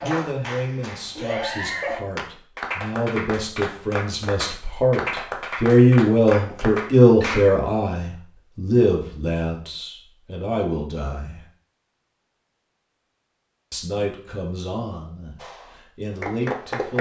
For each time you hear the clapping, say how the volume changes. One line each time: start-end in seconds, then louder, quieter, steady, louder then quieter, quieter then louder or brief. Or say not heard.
0.0-7.5 steady
15.3-16.9 brief.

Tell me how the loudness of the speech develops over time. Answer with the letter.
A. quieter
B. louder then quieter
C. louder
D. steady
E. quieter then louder
B.